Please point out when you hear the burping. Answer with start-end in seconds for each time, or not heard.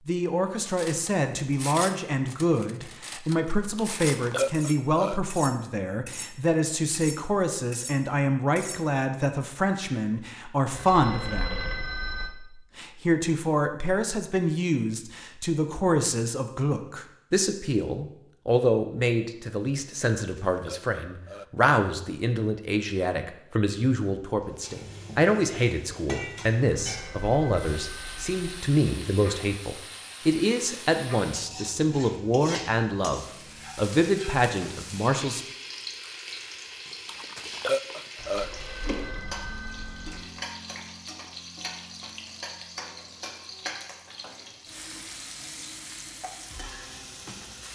3.8-5.2, 20.1-21.4, 37.0-38.5.